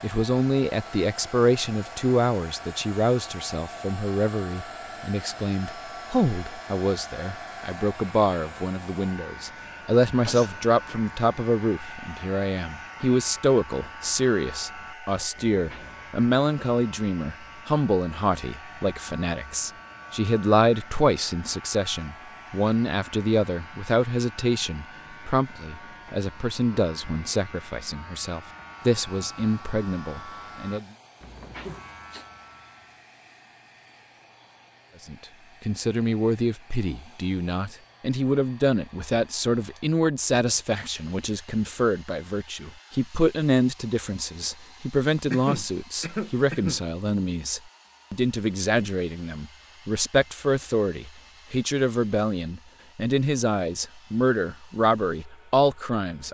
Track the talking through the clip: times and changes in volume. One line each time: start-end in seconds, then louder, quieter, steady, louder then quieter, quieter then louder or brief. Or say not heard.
0.0-30.9 steady
35.0-56.2 steady.